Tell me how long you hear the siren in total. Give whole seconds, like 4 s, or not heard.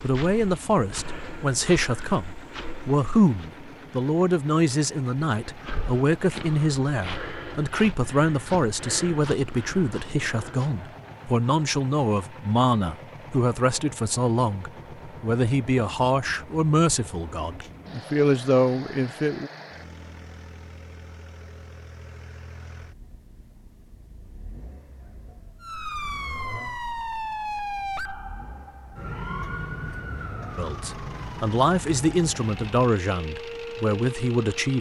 9 s.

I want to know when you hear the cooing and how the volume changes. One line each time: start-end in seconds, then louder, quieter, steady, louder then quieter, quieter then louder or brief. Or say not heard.
not heard.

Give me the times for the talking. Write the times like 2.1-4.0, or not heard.
0.0-19.5, 30.6-34.7.